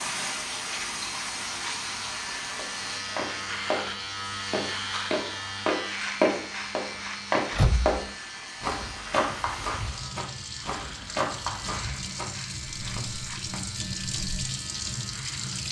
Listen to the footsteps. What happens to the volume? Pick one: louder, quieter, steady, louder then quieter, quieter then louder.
louder then quieter.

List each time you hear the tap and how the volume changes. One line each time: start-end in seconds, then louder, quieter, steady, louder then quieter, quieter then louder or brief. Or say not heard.
0.0-15.6 quieter then louder.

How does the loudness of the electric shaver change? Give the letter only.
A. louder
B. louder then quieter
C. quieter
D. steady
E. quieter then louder
C.